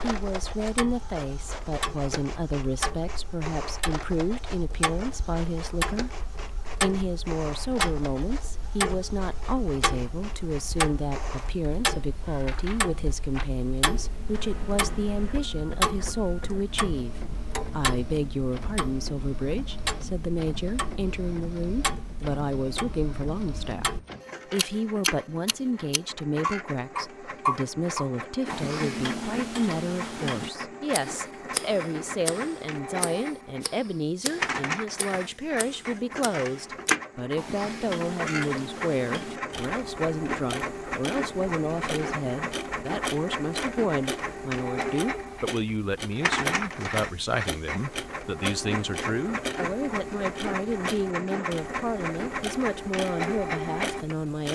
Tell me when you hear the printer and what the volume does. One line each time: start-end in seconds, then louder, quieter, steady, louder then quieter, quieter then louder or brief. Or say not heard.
0.0-54.4 louder.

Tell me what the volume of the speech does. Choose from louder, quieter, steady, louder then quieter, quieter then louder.
steady.